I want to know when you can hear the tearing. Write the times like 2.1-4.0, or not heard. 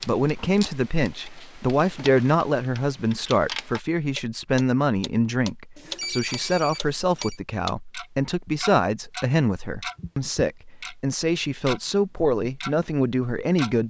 not heard.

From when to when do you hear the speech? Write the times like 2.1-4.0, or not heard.
0.1-13.8.